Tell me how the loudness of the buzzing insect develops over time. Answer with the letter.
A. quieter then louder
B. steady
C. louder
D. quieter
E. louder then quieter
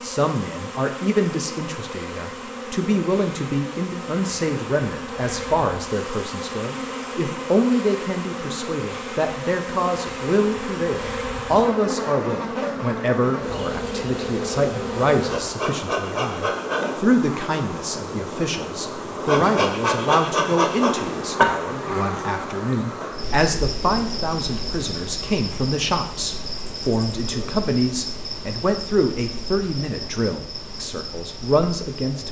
E.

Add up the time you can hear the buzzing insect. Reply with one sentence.
You can hear the buzzing insect for 32 seconds altogether.